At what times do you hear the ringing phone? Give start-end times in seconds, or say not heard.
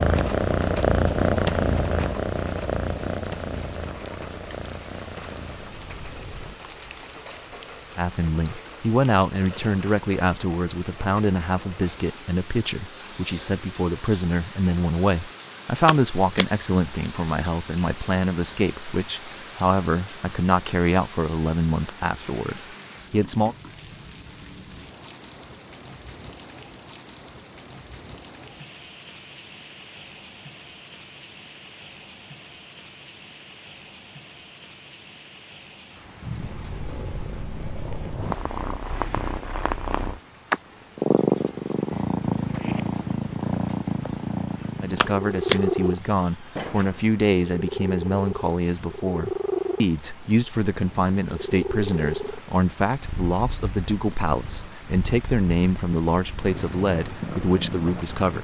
15.8-16.4, 45.0-45.6.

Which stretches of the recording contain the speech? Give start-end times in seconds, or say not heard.
8.0-23.6, 44.8-58.3.